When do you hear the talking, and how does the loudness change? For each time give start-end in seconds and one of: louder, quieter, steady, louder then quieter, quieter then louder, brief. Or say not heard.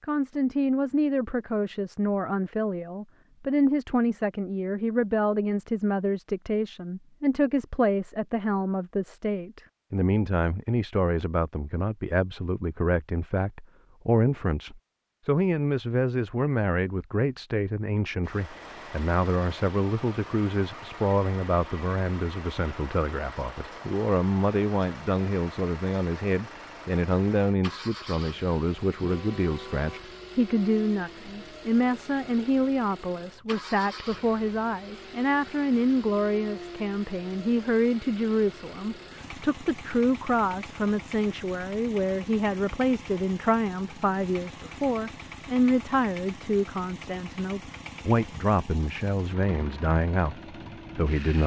0.0-51.4 steady.